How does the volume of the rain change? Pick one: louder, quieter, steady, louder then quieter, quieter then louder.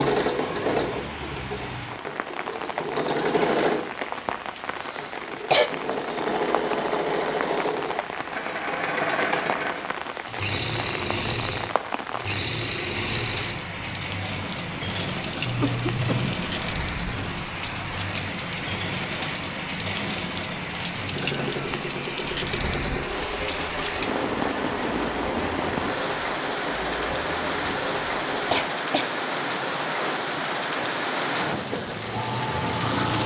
louder.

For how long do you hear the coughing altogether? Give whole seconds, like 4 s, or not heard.
3 s.